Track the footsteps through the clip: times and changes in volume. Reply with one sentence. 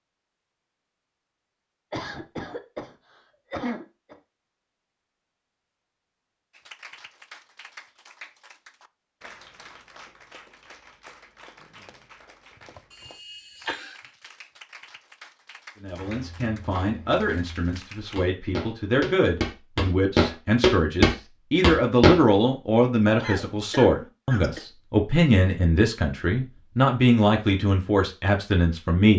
The footsteps can be heard from 15.9 to 22.2 s, getting louder.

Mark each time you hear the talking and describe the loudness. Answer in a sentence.
You can hear the talking from 15.8 to 29.1 s, getting louder.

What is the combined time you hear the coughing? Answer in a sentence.
The coughing can be heard for 5 seconds in total.